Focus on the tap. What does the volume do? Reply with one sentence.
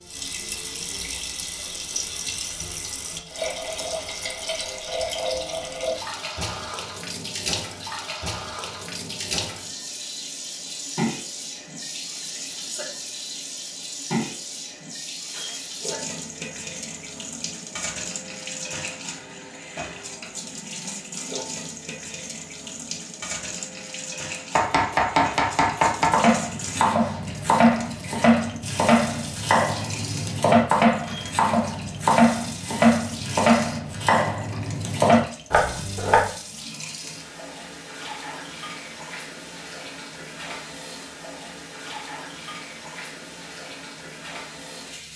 The volume of the tap goes down.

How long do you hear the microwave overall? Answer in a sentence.
You can't hear the microwave here.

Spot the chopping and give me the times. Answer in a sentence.
The chopping can be heard from 24.6 to 36.2 s.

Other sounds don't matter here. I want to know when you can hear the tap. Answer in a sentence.
You can hear the tap from 0.0 to 45.1 s.